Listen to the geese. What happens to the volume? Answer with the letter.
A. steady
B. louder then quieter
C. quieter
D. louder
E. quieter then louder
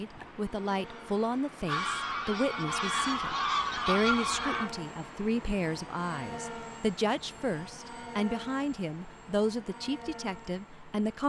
D.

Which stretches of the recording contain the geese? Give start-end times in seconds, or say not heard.
0.0-4.7.